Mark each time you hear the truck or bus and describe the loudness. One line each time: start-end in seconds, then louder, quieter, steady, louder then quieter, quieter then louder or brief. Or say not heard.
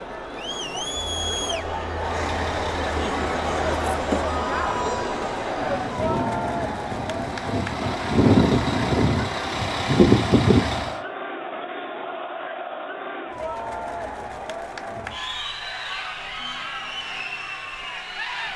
1.9-10.9 quieter then louder.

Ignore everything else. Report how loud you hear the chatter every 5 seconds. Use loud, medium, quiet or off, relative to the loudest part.
loud, loud, medium, medium.